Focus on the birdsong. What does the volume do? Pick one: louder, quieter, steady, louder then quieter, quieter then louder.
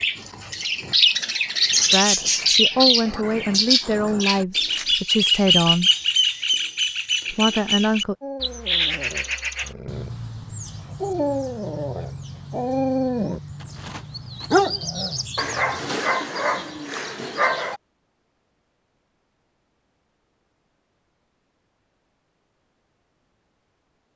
quieter.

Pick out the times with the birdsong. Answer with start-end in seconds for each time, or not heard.
0.0-15.9.